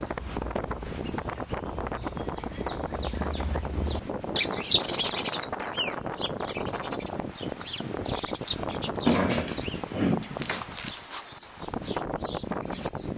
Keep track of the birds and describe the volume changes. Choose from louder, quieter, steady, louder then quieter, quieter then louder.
louder then quieter.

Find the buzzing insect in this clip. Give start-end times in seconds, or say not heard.
not heard.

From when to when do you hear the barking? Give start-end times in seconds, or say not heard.
9.1-10.6.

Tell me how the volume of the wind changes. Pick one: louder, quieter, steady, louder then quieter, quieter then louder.
steady.